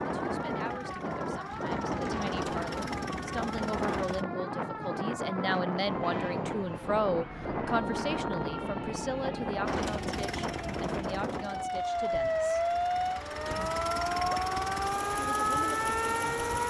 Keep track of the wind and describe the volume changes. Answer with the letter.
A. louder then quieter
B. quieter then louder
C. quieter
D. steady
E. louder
C.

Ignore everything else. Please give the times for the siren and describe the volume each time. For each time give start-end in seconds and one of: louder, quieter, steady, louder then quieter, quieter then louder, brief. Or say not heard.
0.0-16.6 louder.